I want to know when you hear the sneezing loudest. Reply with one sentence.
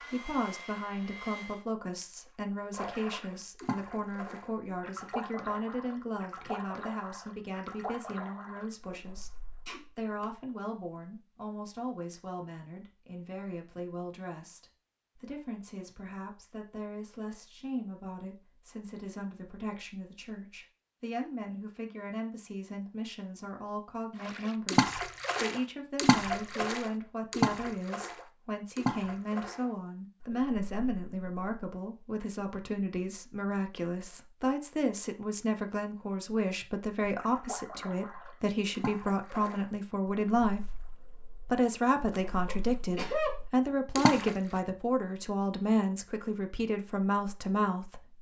The volume of the sneezing peaks at 43 seconds.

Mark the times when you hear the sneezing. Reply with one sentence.
The sneezing can be heard from 9.7 to 10.2 s, from 25.8 to 26.9 s and from 42.5 to 43.4 s.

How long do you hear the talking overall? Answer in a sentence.
The talking can be heard for 48 seconds in total.